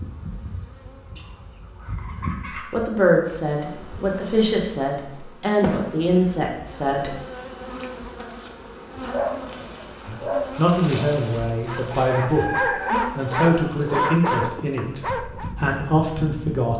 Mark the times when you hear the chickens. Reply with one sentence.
The chickens can be heard from 1.1 to 2.8 s and from 12.2 to 13.5 s.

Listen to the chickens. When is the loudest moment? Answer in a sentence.
The loudest moment of the chickens is at 13 seconds.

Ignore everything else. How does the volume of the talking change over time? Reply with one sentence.
The volume of the talking stays about the same.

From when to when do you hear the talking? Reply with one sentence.
The talking can be heard from 2.7 to 7.2 s and from 10.1 to 16.7 s.